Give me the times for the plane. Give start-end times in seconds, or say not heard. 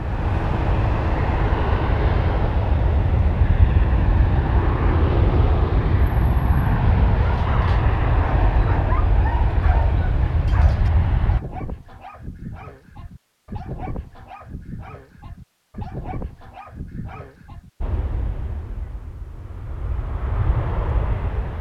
0.0-11.4, 17.8-21.5.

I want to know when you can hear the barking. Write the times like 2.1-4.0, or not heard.
7.0-17.7.